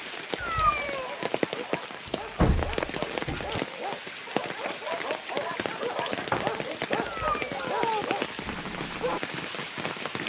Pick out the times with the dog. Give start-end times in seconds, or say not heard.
0.6-9.2.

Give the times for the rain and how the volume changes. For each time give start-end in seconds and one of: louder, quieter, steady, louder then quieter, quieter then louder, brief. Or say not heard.
0.0-10.2 steady.